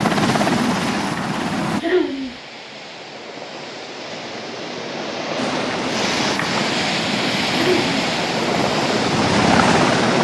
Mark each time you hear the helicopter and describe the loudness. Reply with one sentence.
The helicopter can be heard briefly from 0.0 to 1.8 s; and from 5.3 to 10.2 s, getting louder.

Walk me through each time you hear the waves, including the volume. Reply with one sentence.
The waves can be heard from 0.1 to 10.2 s, getting louder.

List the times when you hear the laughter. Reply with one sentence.
The laughter can be heard from 1.8 to 2.4 s and from 7.5 to 8.0 s.